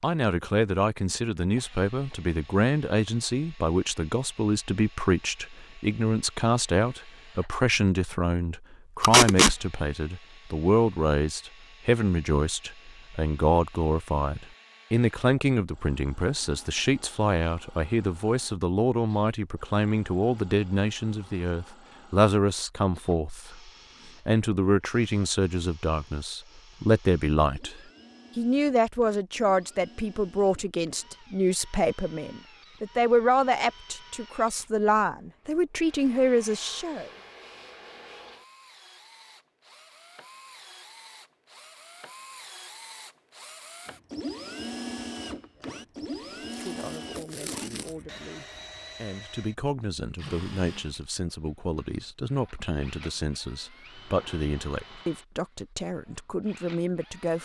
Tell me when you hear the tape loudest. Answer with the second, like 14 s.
9 s.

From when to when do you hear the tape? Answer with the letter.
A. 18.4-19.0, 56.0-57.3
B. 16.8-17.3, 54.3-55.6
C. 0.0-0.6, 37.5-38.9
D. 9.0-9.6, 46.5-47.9
D.